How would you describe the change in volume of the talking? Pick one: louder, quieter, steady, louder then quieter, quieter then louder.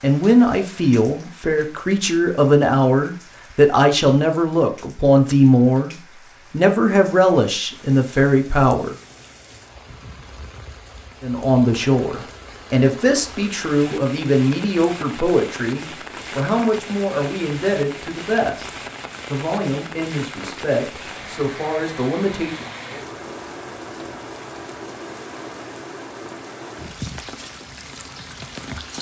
quieter.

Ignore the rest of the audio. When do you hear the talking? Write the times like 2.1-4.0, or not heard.
0.0-8.9, 11.2-22.7.